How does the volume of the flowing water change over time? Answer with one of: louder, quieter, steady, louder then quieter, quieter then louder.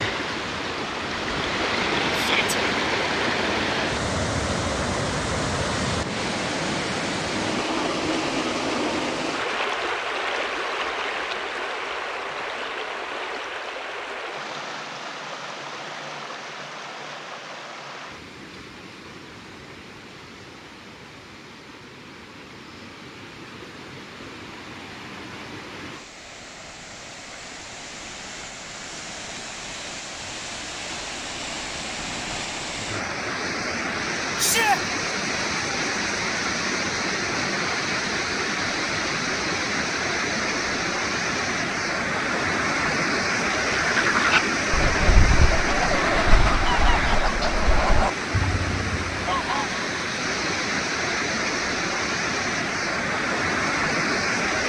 quieter then louder.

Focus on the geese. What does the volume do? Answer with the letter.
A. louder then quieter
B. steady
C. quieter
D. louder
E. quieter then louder
C.